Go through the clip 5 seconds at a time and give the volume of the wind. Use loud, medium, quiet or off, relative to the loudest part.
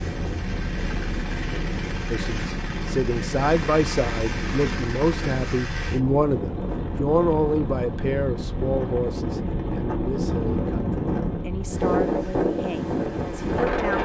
medium, medium, loud.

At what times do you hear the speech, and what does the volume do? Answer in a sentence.
You can hear the speech from 2.1 to 14.0 s, getting quieter.